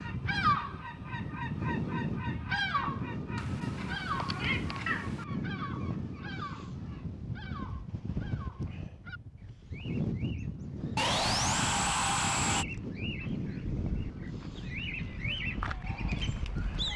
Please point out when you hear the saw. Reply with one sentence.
The saw can be heard from 10.9 to 12.7 s.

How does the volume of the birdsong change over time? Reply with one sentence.
The loudness of the birdsong goes down, then up.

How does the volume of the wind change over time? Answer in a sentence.
The volume of the wind stays about the same.